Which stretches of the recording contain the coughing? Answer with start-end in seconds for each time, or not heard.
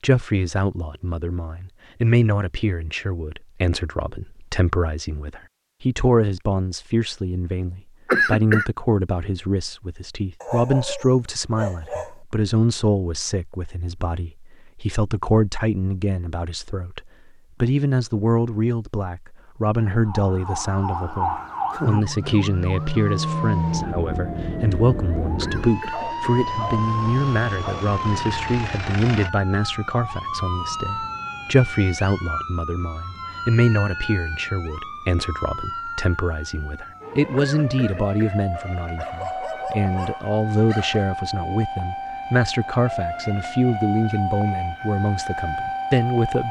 8.1-8.7, 25.4-26.2, 37.4-38.4.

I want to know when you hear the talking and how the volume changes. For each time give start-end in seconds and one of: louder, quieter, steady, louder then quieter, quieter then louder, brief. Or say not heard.
0.0-46.4 steady.